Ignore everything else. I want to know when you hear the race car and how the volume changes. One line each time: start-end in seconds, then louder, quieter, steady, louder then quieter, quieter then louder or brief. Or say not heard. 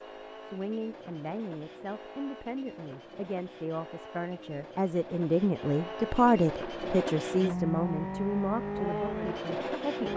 0.0-10.1 louder.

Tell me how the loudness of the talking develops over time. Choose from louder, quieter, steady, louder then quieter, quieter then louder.
louder then quieter.